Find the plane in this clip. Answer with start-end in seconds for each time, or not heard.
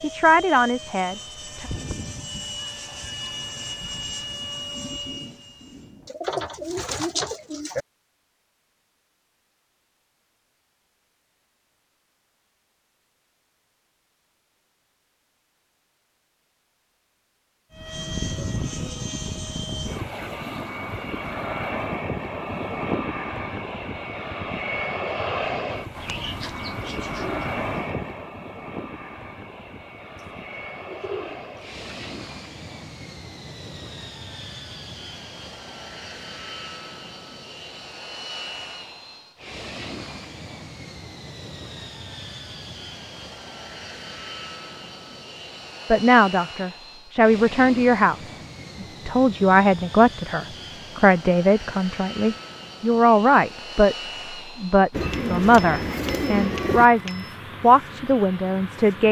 0.0-6.1, 17.7-59.0.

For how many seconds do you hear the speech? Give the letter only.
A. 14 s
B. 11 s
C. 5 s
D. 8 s
A.